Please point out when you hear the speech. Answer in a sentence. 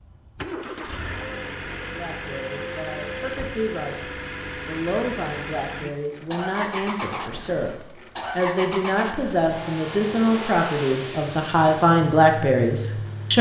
You can hear the speech from 1.9 to 13.3 s.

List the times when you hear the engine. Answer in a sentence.
You can hear the engine from 0.0 to 13.3 s.